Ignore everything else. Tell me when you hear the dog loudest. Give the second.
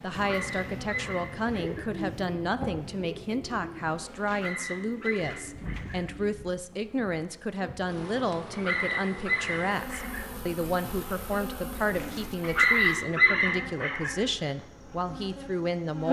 13 s.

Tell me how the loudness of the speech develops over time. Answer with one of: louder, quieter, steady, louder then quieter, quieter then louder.
steady.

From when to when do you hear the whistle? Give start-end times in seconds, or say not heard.
not heard.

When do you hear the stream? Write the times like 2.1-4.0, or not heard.
not heard.